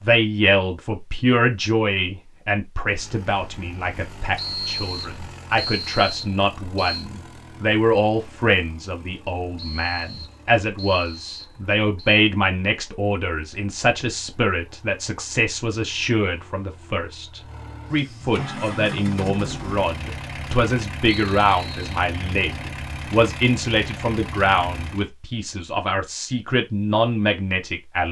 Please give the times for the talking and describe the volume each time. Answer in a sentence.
The talking can be heard from 0.0 to 28.0 s, at a steady volume.